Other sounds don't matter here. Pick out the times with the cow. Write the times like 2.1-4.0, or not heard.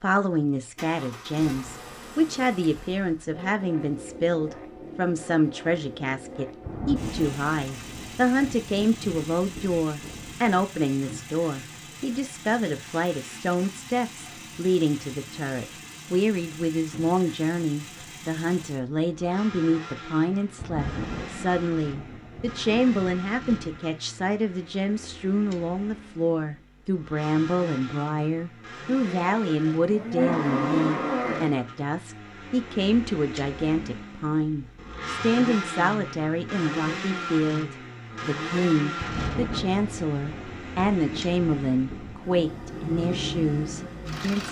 29.0-31.6.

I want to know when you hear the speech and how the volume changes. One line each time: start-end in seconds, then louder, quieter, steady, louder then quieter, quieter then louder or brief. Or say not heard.
0.0-44.4 steady.